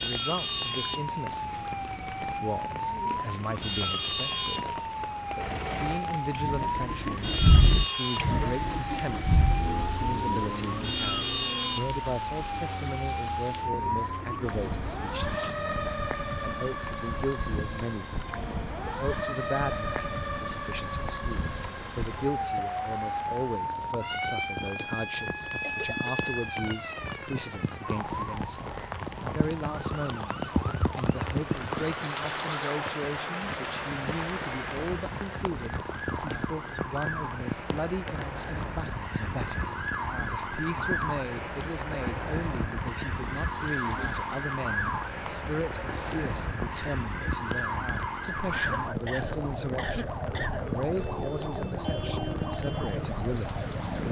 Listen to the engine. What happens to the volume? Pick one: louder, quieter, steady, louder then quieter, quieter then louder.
quieter.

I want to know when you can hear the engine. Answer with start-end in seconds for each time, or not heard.
5.3-15.6.